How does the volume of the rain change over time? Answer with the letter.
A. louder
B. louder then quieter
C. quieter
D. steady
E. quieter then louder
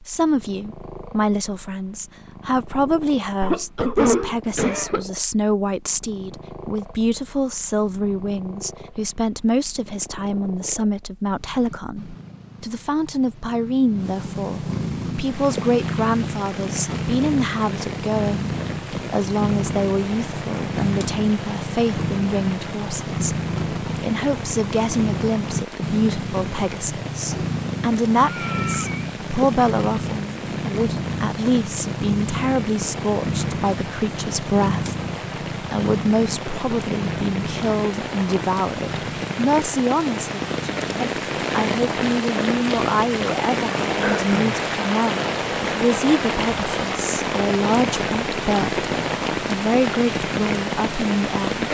A.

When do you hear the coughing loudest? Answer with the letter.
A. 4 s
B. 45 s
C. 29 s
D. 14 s
A.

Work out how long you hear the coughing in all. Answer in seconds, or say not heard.
3 s.